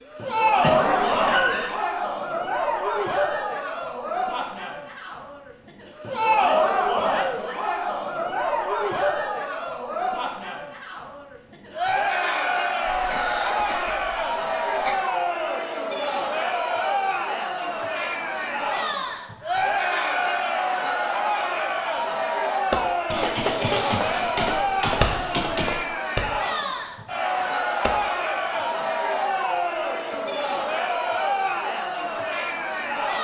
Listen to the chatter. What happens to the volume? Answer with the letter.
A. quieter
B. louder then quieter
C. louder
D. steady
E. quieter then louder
D.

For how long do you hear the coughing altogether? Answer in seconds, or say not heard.
6 s.